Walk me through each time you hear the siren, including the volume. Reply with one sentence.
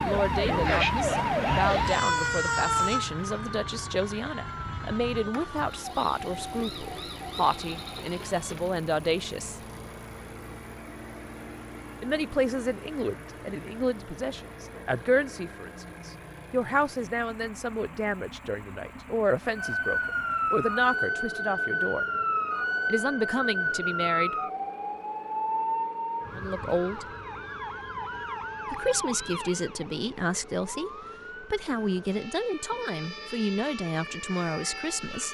The siren can be heard from 0.0 to 8.7 s, getting quieter; and from 19.6 to 35.2 s, getting quieter.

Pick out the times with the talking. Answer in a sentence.
The talking can be heard from 0.0 to 9.6 s, from 12.0 to 22.1 s, from 22.9 to 24.4 s, from 26.4 to 27.1 s and from 28.7 to 35.2 s.